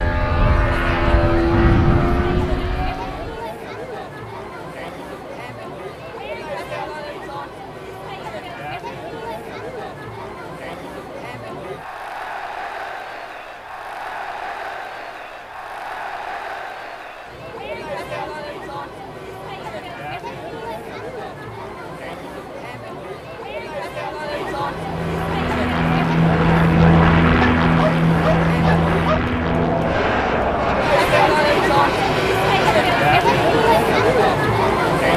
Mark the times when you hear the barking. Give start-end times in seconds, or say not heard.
27.4-29.2.